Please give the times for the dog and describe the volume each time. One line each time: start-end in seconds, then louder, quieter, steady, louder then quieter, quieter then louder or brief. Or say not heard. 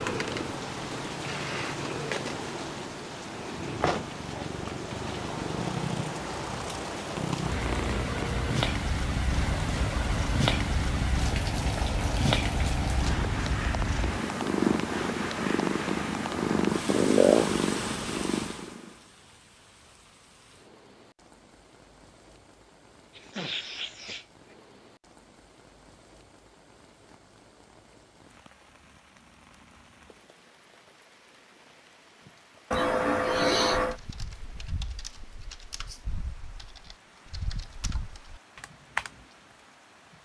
not heard.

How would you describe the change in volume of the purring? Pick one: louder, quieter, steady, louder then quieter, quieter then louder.
louder.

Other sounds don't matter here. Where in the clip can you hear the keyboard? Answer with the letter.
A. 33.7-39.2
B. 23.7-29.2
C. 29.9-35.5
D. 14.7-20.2
A.